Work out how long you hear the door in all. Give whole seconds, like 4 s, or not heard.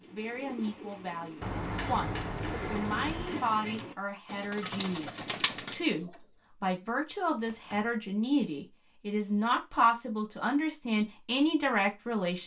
3 s.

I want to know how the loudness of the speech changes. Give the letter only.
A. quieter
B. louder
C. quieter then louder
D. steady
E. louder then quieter
B.